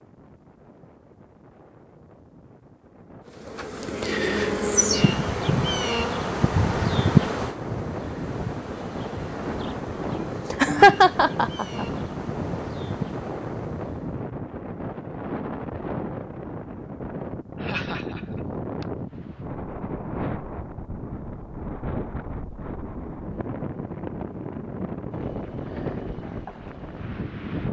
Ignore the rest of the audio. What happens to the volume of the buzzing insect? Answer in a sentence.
The loudness of the buzzing insect goes down.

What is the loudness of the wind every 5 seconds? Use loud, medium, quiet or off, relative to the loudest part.
quiet, loud, loud, loud, loud, loud.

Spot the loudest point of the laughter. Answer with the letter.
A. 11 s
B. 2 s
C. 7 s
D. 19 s
A.